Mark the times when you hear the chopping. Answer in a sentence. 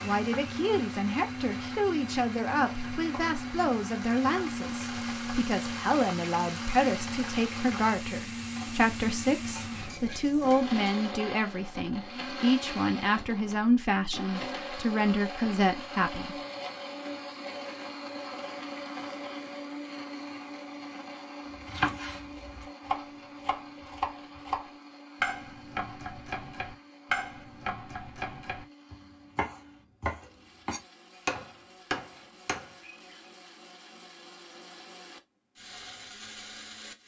You can hear the chopping from 21.6 to 33.0 s.